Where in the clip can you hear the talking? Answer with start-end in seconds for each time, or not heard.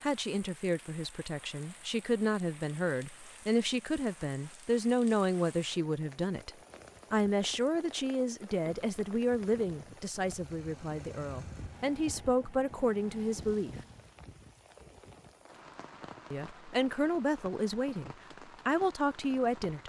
0.0-6.5, 7.1-13.8, 16.3-19.8.